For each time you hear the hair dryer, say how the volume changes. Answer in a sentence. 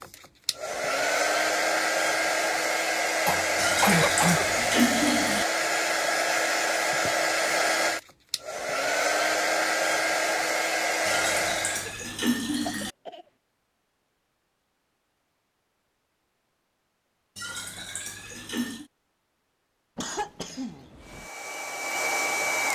The hair dryer can be heard from 0.0 to 11.9 s, at a steady volume; and briefly from 21.0 to 22.7 s.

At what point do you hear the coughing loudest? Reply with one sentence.
The loudest moment of the coughing is at 4 seconds.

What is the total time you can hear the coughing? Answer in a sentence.
The coughing can be heard for 4 seconds in total.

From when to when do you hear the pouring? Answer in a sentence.
The pouring can be heard from 3.5 to 5.5 s, from 11.1 to 12.9 s and from 17.4 to 18.9 s.